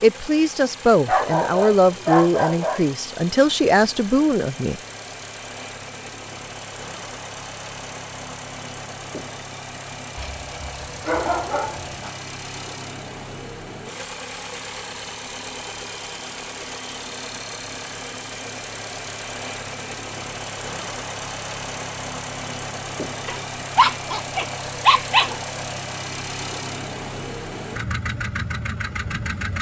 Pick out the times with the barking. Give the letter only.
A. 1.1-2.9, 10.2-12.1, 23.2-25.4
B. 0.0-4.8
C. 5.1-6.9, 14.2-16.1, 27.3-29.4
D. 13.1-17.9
A.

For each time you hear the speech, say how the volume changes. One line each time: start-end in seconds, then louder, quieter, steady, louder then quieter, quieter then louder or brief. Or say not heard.
0.0-4.8 steady.